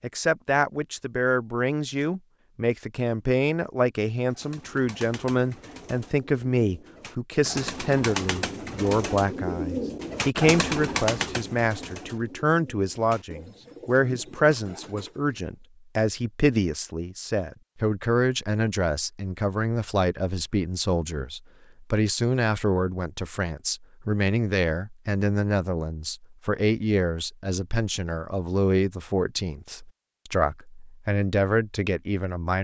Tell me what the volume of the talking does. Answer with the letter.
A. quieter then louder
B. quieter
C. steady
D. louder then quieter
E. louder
C.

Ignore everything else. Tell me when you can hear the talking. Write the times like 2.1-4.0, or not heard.
0.0-32.5.